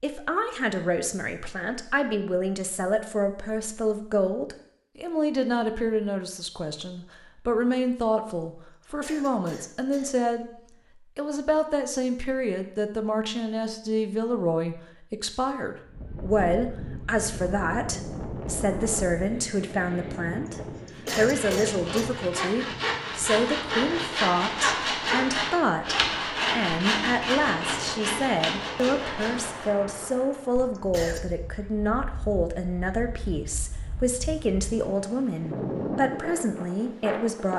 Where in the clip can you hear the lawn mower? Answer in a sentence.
The lawn mower can't be heard in this clip.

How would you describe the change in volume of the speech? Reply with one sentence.
The loudness of the speech stays about the same.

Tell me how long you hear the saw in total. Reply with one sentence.
The saw can be heard for 9 seconds in total.